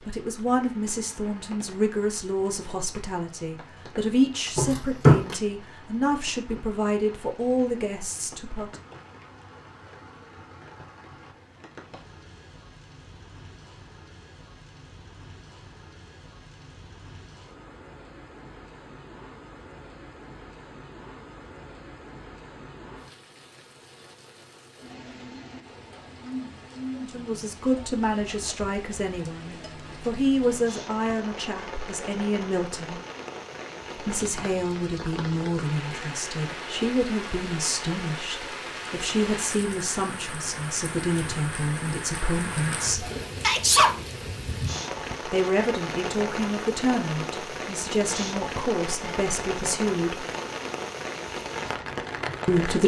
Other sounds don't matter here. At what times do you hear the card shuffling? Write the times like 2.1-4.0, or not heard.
4.5-5.3.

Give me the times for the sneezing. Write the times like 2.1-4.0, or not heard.
43.0-44.0.